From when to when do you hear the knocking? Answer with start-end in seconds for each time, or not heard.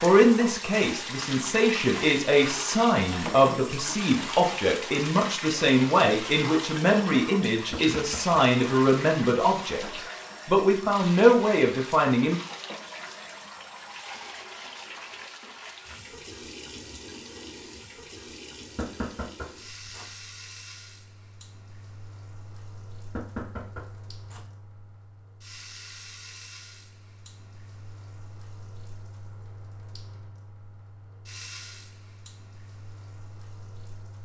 7.7-8.4, 18.8-20.1, 23.1-24.4.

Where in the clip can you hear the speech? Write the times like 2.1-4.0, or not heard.
0.0-12.3.